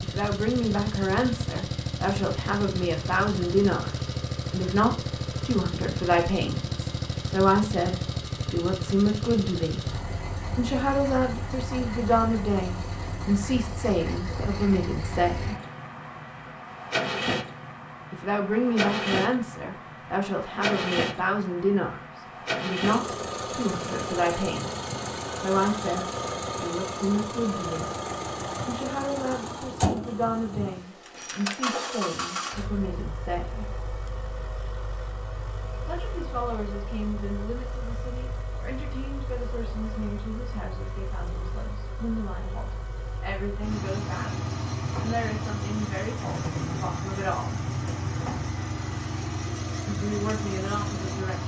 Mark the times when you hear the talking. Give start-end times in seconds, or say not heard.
0.0-9.8, 10.6-15.6, 18.1-27.9, 28.6-33.6, 35.9-47.6, 49.9-51.4.